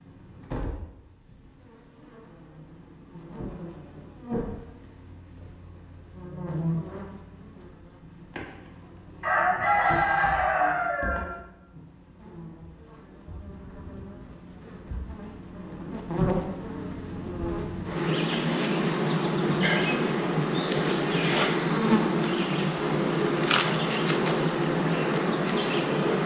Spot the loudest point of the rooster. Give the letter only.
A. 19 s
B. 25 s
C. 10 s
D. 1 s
C.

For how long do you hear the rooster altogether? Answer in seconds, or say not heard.
2 s.